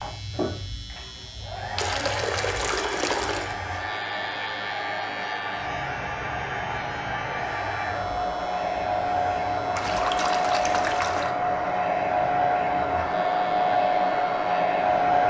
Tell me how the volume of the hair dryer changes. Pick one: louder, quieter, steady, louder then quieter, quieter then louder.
louder.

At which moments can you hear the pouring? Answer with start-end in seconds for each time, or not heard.
1.8-3.5, 9.8-11.3.